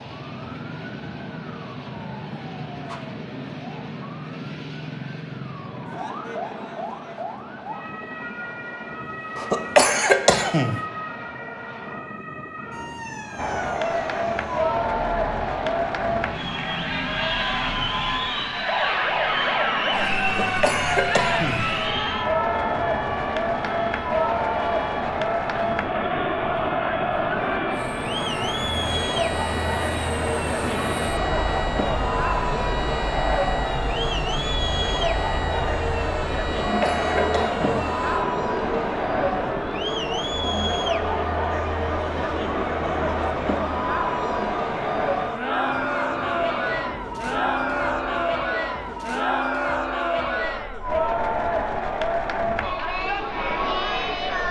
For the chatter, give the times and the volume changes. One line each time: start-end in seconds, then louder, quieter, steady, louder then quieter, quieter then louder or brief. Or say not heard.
13.3-54.4 steady.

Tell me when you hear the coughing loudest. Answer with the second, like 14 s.
10 s.